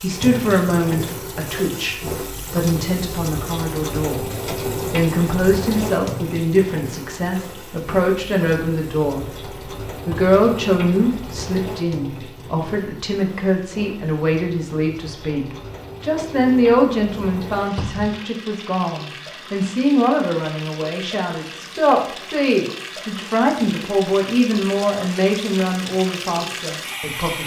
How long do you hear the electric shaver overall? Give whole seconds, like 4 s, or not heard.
not heard.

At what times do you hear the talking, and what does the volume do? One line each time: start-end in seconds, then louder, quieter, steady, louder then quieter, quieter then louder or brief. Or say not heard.
0.0-9.4 steady
10.1-27.4 steady.